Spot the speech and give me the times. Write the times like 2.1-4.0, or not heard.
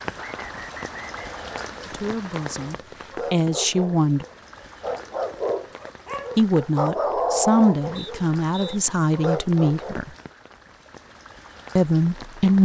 1.9-4.2, 6.3-10.1, 11.8-12.6.